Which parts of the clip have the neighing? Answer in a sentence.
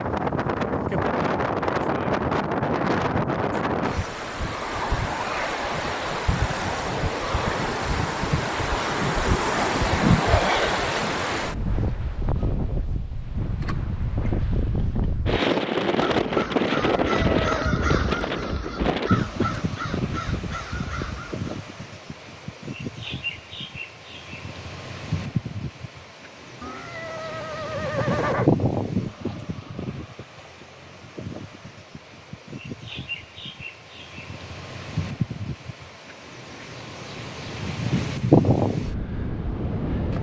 You can hear the neighing from 16.8 to 17.9 s and from 26.6 to 28.5 s.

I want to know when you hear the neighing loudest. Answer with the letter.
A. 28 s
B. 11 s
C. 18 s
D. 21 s
A.